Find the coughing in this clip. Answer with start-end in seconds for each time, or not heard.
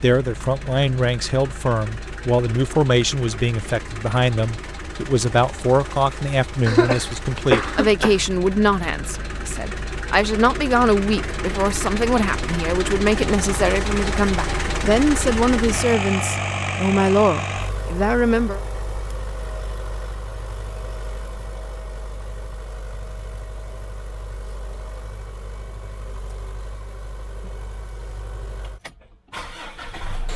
6.7-8.2.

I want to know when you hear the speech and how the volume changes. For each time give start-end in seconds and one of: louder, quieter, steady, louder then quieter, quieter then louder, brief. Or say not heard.
0.0-18.6 steady.